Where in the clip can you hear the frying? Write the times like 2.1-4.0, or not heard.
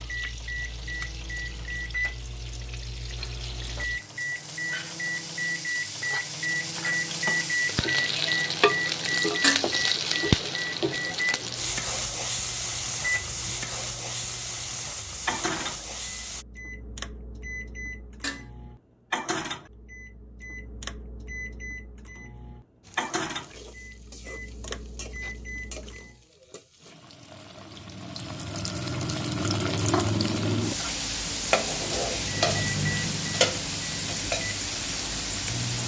0.0-16.4, 22.8-35.8.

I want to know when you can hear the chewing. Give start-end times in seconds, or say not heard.
not heard.